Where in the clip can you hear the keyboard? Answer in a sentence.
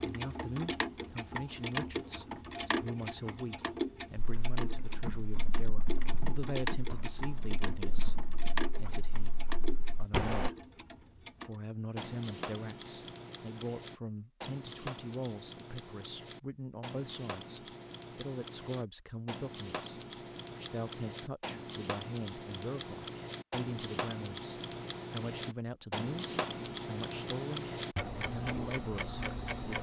The keyboard can be heard from 4.2 to 10.5 s.